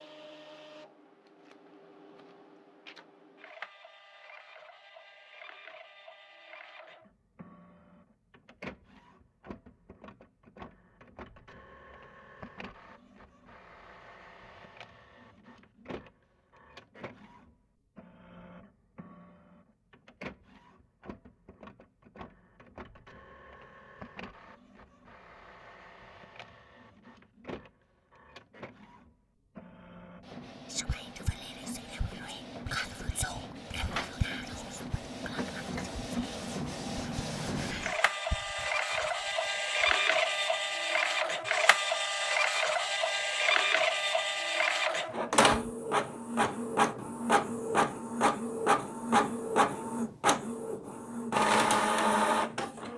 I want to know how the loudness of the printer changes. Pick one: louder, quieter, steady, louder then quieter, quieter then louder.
louder.